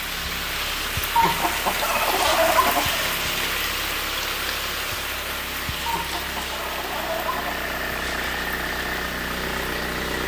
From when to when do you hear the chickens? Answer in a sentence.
You can hear the chickens from 1.1 to 3.1 s and from 5.8 to 7.7 s.